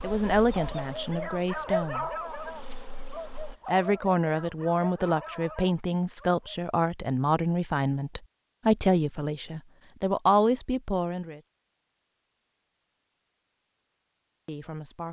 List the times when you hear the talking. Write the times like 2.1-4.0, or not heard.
0.0-2.0, 3.6-11.4, 14.4-15.0.